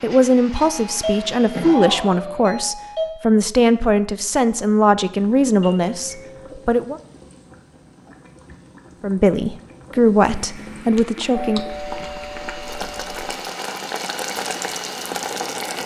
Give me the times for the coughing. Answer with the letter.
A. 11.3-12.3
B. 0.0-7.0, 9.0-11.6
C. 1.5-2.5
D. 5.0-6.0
C.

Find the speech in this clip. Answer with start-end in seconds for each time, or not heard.
0.0-7.0, 9.0-11.6.